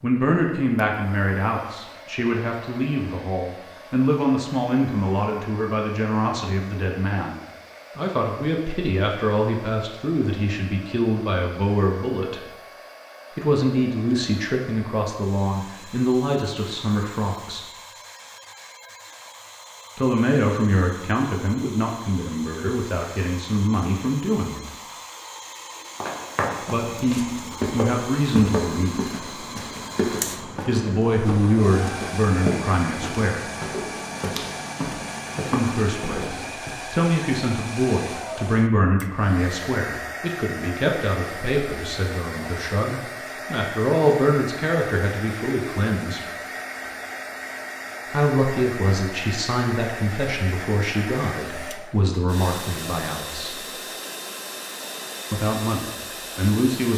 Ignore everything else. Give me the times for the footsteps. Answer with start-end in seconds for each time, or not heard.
26.0-36.8.